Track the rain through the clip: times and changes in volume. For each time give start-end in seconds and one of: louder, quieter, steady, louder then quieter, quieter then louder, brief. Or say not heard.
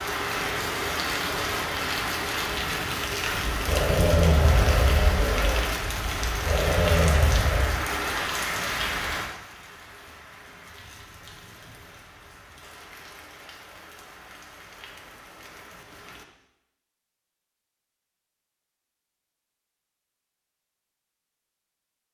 0.0-16.2 quieter.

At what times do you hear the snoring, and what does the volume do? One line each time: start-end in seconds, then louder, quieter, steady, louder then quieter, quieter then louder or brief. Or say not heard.
3.5-7.8 quieter then louder.